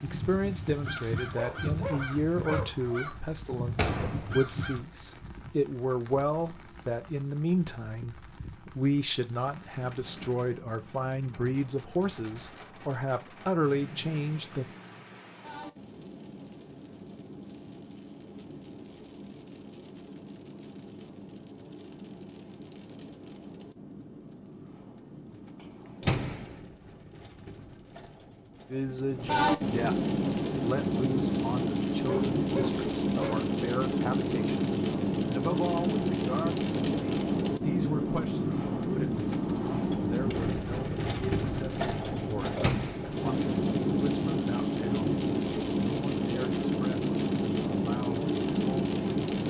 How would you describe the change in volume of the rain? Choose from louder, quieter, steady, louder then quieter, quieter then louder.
louder.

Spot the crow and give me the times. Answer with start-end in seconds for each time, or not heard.
0.0-4.8.